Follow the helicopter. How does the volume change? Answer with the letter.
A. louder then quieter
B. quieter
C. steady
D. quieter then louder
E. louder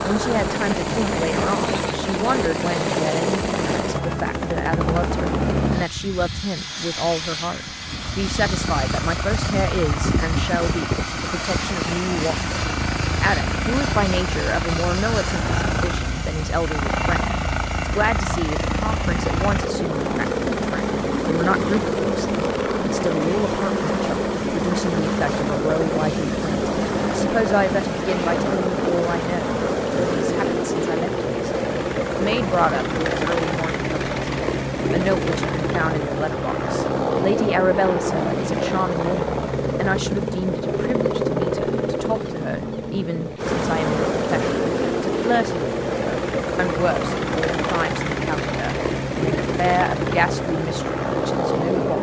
C.